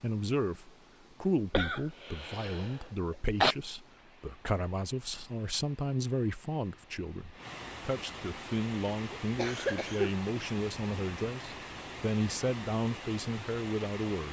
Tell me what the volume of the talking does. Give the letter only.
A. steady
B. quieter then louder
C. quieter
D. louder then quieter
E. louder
A.